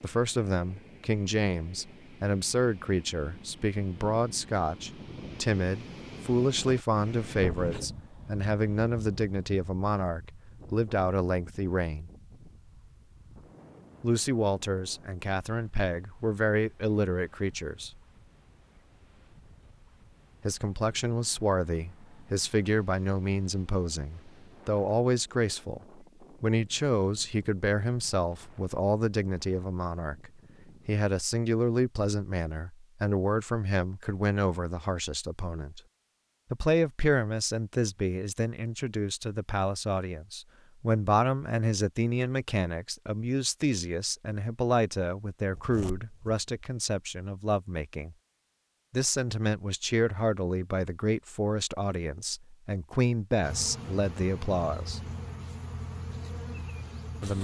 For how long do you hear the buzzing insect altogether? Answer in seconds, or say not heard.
4 s.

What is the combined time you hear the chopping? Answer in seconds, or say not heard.
not heard.